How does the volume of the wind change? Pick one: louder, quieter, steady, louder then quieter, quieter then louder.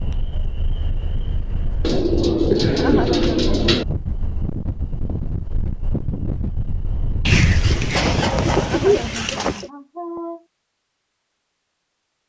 louder.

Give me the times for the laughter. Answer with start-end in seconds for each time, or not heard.
2.7-3.5, 8.6-10.4.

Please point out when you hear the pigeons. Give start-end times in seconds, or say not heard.
1.8-3.9, 7.2-9.7.